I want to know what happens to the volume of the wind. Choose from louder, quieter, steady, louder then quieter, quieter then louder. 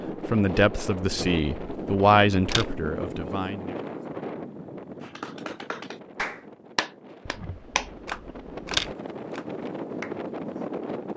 quieter then louder.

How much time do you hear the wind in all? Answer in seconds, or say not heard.
11 s.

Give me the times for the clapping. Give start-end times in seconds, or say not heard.
5.0-10.2.